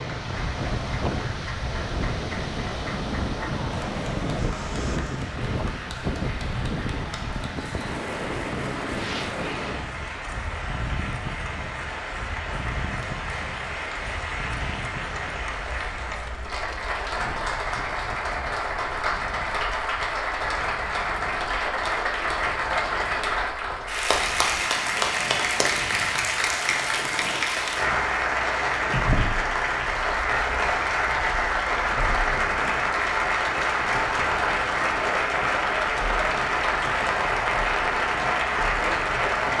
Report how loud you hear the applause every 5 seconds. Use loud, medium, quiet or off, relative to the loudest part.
quiet, quiet, medium, medium, loud, loud, loud, loud.